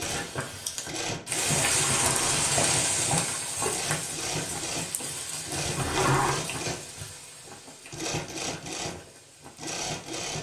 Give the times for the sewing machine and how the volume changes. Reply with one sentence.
You can hear the sewing machine from 0.0 to 10.3 s, at a steady volume.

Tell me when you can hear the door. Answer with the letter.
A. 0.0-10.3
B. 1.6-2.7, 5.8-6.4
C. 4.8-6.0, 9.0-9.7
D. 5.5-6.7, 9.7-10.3
B.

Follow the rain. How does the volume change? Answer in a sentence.
The volume of the rain goes down.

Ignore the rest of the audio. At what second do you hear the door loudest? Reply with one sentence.
The loudest moment of the door is at 6 seconds.